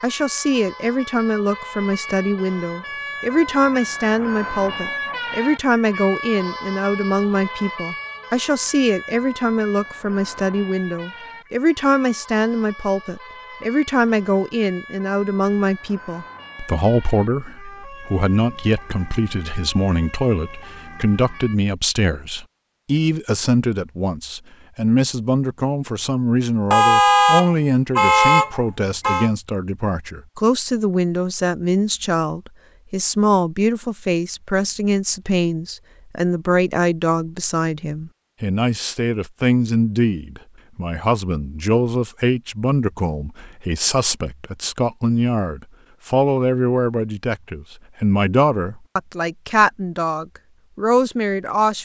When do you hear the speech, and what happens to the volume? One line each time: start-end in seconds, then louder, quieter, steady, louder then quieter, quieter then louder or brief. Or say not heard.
0.0-51.8 steady.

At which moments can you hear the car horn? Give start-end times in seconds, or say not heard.
26.7-29.3.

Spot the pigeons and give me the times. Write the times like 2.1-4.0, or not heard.
not heard.